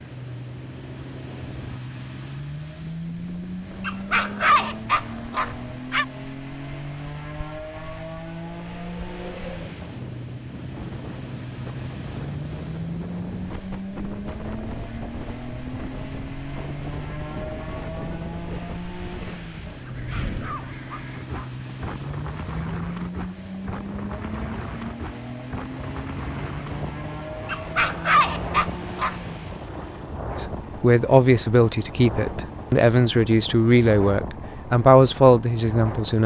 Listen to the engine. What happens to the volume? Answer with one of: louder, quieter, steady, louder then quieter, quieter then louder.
steady.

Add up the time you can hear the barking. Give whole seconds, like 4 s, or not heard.
6 s.